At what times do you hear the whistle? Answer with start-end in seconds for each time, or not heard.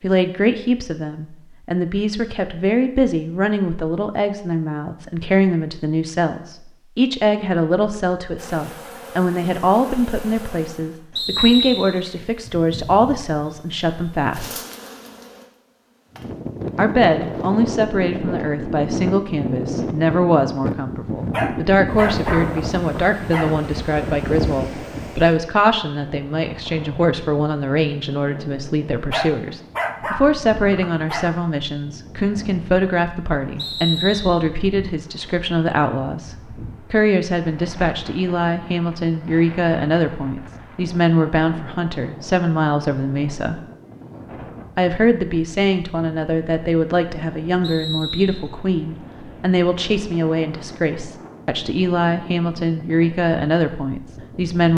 11.2-12.0, 33.5-34.5, 47.6-48.5.